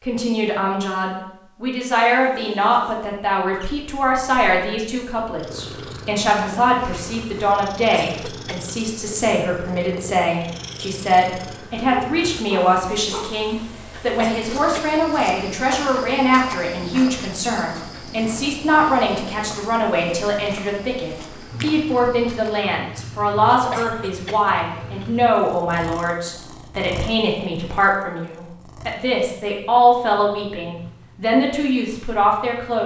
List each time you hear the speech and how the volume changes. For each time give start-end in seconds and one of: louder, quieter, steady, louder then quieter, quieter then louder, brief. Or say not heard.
0.1-32.8 steady.